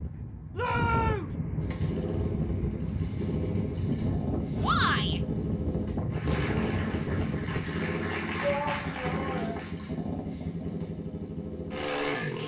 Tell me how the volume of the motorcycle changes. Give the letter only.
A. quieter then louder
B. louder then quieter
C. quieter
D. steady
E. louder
D.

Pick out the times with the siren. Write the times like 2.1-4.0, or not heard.
not heard.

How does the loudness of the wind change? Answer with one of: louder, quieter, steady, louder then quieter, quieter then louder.
steady.